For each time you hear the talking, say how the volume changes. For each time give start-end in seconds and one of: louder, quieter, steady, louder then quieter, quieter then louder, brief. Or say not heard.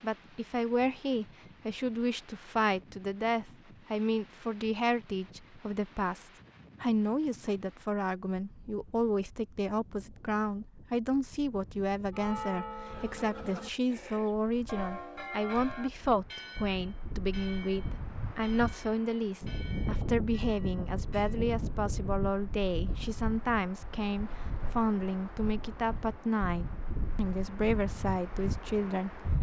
0.0-29.2 steady.